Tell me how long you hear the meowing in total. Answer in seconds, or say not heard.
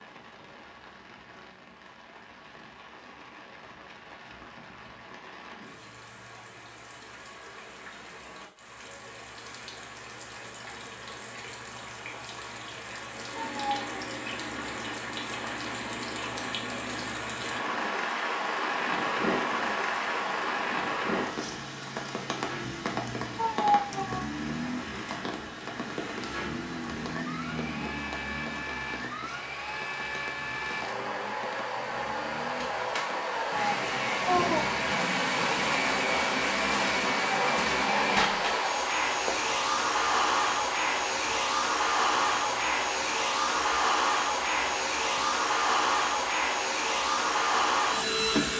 3 s.